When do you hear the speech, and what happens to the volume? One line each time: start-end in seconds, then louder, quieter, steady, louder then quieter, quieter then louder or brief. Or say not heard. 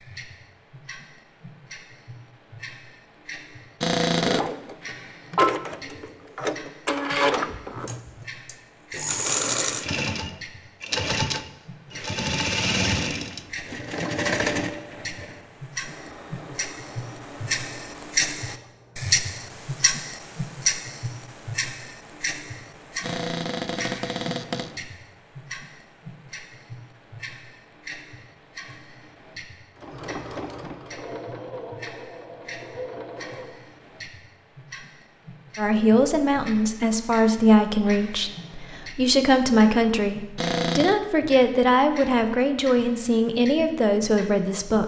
35.5-44.8 steady.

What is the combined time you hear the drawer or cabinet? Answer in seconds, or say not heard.
3 s.